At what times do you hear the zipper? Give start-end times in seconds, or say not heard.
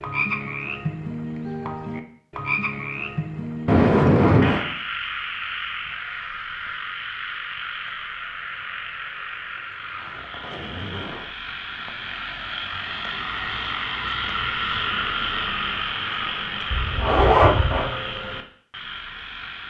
3.6-4.7, 9.6-11.3, 16.7-17.9.